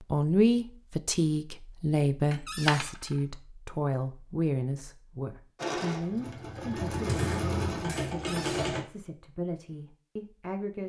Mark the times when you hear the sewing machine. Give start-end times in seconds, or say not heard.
5.5-8.8.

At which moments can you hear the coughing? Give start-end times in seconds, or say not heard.
not heard.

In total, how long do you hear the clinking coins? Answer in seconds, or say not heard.
2 s.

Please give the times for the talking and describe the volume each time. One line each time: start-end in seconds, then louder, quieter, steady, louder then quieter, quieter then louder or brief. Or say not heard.
0.1-10.8 quieter.